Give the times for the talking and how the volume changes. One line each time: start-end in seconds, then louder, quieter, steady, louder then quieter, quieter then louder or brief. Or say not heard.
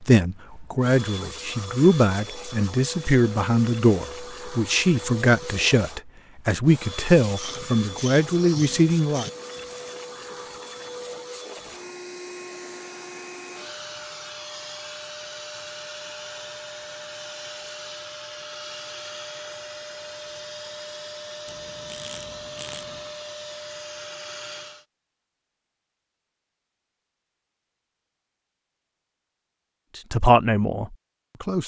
0.0-9.2 steady
29.9-31.6 brief.